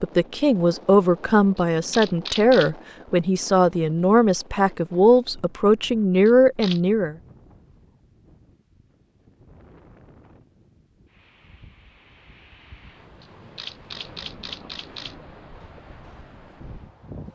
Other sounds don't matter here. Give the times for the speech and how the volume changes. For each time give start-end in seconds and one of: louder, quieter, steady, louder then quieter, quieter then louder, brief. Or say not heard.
0.0-7.2 steady.